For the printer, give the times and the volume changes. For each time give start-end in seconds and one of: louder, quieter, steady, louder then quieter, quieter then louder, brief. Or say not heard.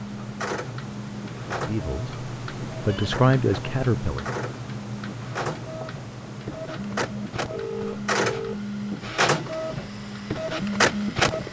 0.0-11.4 louder.